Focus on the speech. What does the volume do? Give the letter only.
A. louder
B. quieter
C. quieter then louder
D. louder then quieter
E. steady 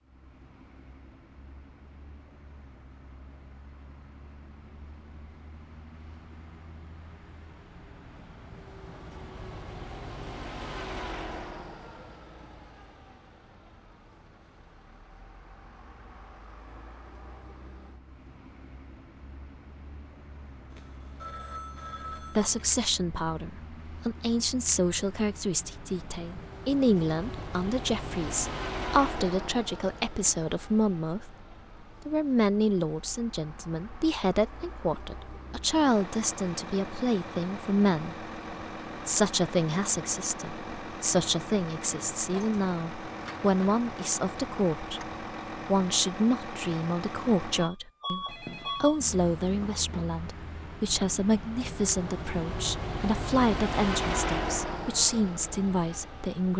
E.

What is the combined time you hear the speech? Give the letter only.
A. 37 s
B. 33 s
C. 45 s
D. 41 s
B.